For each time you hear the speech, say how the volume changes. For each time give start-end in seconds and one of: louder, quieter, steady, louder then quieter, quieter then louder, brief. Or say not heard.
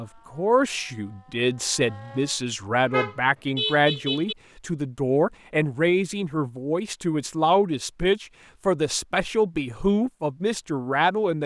0.0-11.4 steady.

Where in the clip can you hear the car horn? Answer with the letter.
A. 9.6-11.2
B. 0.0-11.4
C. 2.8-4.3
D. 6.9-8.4
C.